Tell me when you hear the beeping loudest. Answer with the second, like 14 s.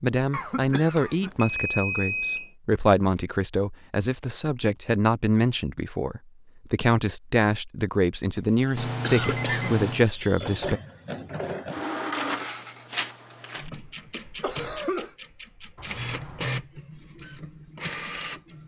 2 s.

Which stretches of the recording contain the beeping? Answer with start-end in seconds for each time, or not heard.
0.9-2.5, 8.8-10.1, 15.8-16.6.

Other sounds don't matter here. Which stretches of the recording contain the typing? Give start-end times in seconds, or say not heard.
not heard.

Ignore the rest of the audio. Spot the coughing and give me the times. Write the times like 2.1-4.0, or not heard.
0.3-1.3, 8.3-9.8, 14.4-15.2.